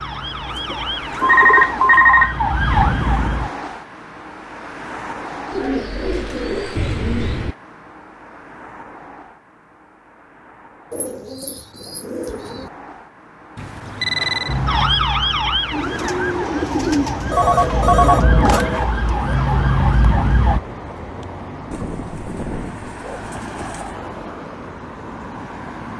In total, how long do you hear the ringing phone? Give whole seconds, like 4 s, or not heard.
4 s.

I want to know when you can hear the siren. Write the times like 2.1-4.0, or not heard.
0.0-3.5, 14.4-20.6.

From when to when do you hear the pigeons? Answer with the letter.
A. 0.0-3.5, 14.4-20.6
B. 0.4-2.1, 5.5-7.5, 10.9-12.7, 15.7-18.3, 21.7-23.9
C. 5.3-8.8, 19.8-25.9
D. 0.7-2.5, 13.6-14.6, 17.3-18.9
B.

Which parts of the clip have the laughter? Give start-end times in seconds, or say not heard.
not heard.